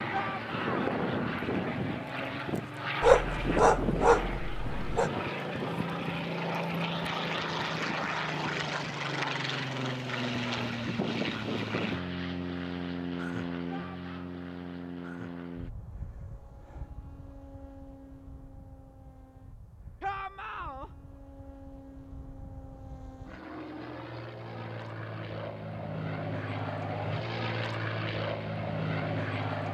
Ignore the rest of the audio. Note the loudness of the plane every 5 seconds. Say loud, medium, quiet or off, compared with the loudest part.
loud, loud, loud, quiet, quiet, loud.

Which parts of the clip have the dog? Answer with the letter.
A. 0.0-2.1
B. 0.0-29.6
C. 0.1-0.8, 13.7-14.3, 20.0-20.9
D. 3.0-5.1
D.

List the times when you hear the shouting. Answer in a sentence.
The shouting can be heard from 0.1 to 0.8 s, from 13.7 to 14.3 s and from 20.0 to 20.9 s.